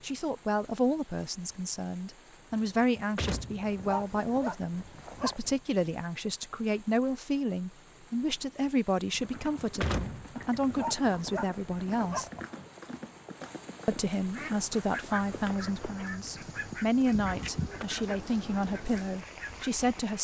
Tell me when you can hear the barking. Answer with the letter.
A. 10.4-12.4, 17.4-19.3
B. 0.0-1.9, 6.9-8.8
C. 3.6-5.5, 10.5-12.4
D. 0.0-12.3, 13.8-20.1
C.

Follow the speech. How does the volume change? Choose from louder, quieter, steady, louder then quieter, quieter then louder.
steady.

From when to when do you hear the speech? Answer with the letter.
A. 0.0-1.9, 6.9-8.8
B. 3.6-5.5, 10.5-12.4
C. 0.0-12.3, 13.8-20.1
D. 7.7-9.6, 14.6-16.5
C.